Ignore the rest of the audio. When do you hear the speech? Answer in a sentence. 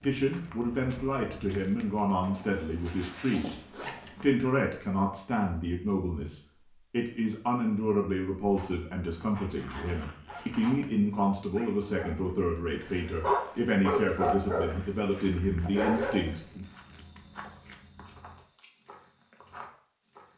The speech can be heard from 0.0 to 3.6 s and from 4.2 to 16.6 s.